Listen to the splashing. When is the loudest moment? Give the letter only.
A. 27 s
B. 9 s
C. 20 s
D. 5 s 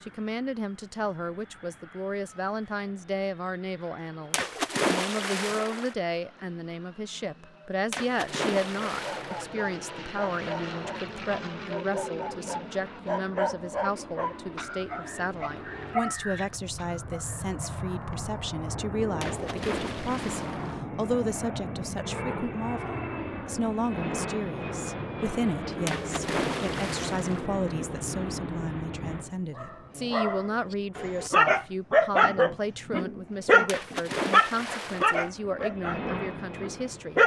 D.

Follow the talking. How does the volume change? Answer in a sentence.
The loudness of the talking stays about the same.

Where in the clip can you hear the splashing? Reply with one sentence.
You can hear the splashing from 4.3 to 6.0 s, from 7.9 to 9.4 s, from 19.2 to 20.8 s, from 25.9 to 27.4 s and from 33.6 to 35.3 s.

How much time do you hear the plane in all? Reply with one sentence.
The plane can be heard for 37 seconds in total.